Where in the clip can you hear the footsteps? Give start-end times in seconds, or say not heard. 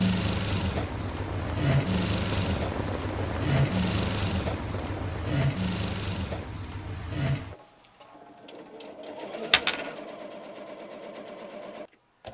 not heard.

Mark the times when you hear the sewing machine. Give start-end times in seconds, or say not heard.
0.0-12.2.